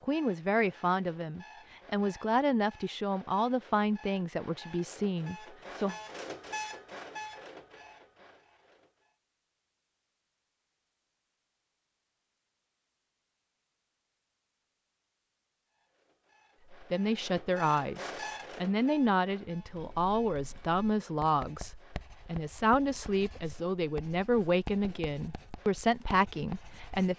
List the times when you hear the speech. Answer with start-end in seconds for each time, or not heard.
0.0-6.0, 16.7-27.1.